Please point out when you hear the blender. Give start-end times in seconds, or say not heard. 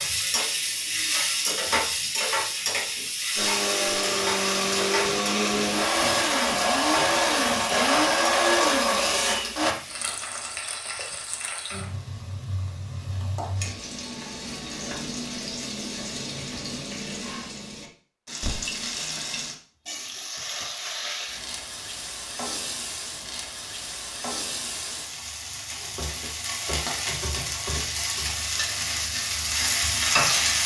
3.4-9.8.